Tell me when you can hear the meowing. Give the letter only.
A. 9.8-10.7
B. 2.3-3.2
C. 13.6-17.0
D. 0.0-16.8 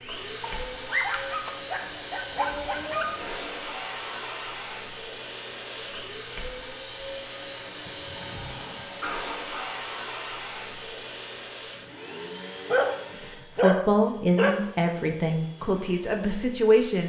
B.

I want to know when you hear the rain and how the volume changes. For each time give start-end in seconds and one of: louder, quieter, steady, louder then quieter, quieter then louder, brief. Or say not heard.
not heard.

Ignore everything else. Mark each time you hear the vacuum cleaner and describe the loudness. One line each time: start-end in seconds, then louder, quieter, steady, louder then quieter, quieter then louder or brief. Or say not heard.
0.0-16.8 quieter.